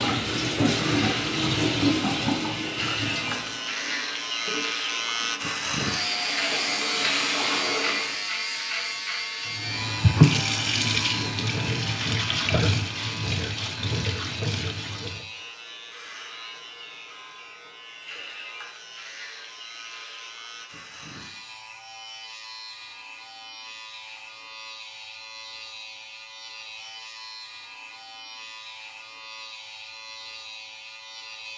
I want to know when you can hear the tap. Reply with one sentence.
You can hear the tap from 0.0 to 8.2 s and from 9.6 to 15.2 s.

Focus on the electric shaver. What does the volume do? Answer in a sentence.
The volume of the electric shaver goes down.